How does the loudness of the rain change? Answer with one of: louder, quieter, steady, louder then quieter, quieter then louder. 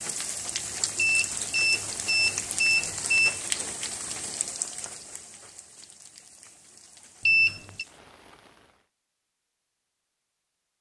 quieter.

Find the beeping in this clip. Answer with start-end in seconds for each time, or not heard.
0.9-3.4, 7.2-7.8.